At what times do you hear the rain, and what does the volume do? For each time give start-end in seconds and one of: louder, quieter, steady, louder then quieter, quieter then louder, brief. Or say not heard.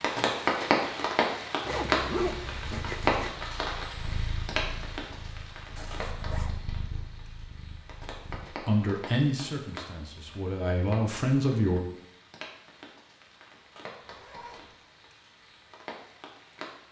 0.0-16.8 quieter.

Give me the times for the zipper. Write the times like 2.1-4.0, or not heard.
1.6-3.4, 5.8-6.5, 14.0-14.8.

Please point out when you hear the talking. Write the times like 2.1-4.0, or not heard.
8.4-11.8.